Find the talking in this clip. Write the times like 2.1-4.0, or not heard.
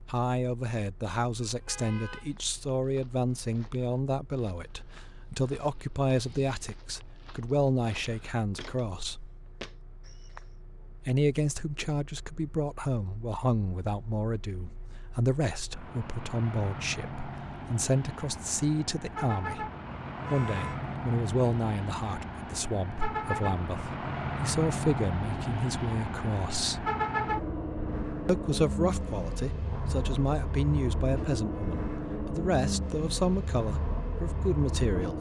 0.1-9.3, 11.1-19.7, 20.3-26.9, 28.2-35.1.